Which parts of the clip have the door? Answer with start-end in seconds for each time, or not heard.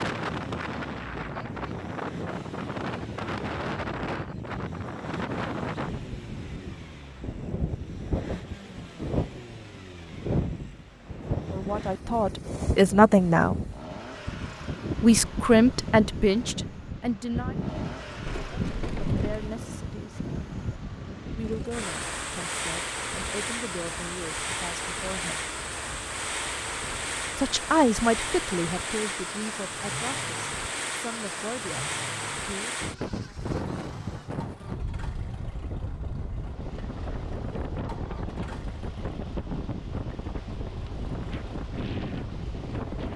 18.2-19.5.